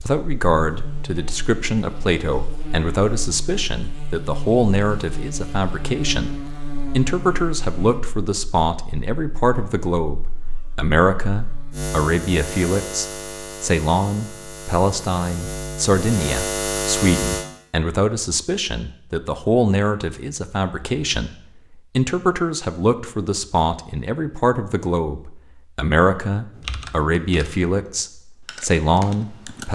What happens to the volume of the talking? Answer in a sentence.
The loudness of the talking stays about the same.